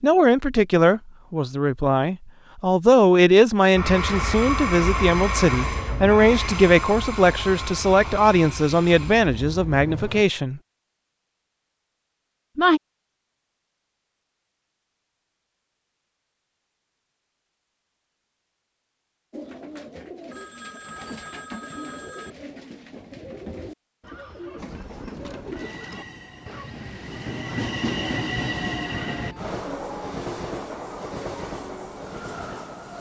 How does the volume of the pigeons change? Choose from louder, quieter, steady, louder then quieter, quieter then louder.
steady.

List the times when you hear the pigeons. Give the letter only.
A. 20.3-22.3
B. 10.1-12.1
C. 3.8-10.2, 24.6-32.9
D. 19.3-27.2
D.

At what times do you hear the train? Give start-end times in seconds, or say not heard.
3.8-10.2, 24.6-32.9.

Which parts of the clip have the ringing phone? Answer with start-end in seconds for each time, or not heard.
20.3-22.3.